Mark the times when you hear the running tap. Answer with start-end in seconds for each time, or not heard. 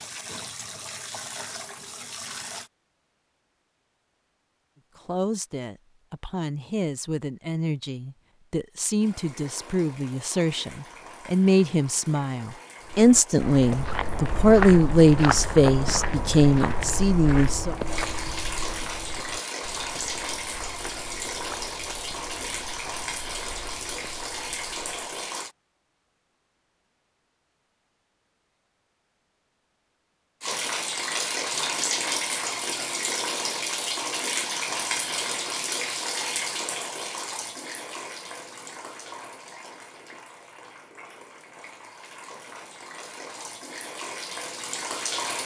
0.0-2.7, 8.9-25.6, 30.4-45.4.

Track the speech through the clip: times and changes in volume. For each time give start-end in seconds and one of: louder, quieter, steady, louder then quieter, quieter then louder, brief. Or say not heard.
5.0-17.8 louder.